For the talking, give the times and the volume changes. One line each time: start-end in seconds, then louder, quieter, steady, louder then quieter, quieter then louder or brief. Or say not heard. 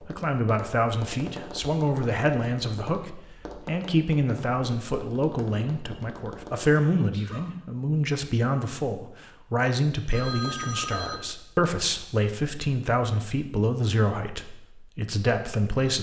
0.1-15.9 steady.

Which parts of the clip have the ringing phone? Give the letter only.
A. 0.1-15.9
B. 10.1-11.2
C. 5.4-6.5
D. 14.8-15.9
B.